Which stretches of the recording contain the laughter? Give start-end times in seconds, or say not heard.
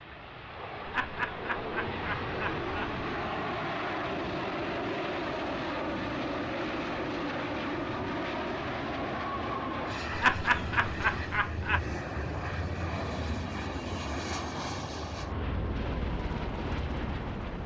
0.8-3.0, 10.1-11.8.